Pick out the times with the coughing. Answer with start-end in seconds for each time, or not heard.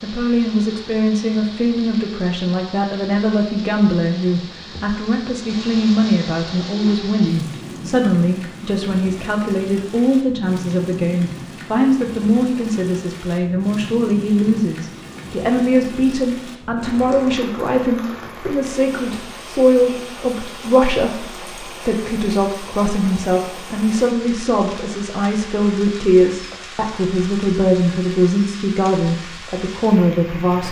not heard.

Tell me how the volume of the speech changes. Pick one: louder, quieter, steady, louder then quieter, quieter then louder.
steady.